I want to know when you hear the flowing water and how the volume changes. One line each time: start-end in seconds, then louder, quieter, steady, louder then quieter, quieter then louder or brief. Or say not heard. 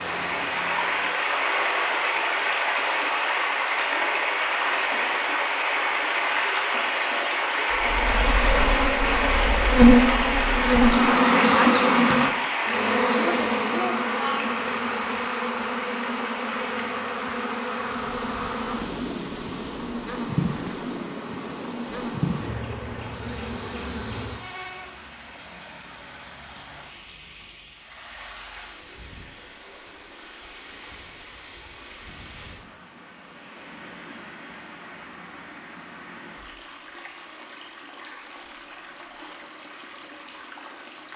0.0-41.1 quieter.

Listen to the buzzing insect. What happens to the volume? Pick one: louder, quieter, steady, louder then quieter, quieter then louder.
quieter.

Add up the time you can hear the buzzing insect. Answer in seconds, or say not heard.
17 s.